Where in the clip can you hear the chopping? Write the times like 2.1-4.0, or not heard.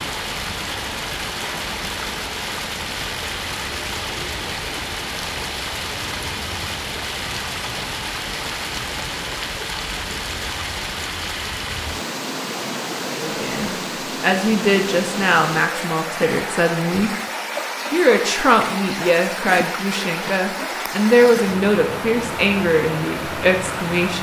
not heard.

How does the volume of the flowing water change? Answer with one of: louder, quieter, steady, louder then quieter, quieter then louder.
steady.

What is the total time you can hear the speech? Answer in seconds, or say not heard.
10 s.